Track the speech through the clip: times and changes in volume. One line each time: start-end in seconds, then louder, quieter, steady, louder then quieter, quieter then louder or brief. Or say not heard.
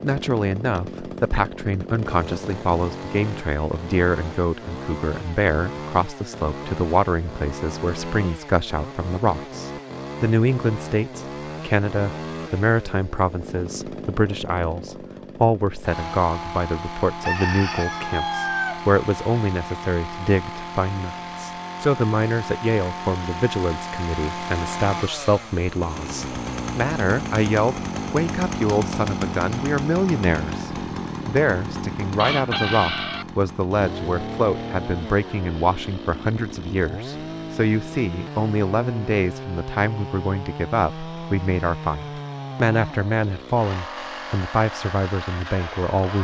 0.0-46.1 steady.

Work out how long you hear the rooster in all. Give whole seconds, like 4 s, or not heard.
3 s.